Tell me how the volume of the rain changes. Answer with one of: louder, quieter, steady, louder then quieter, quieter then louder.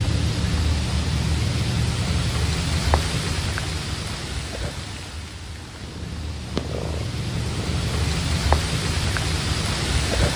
quieter then louder.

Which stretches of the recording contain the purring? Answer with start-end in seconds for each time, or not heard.
5.5-8.1.